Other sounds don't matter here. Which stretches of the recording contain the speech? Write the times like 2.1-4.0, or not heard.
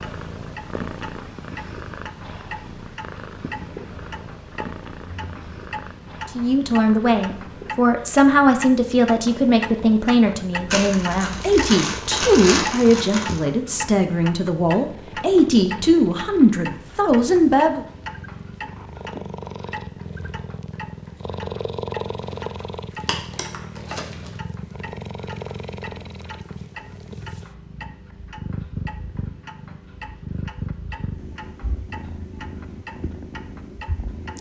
6.2-17.9.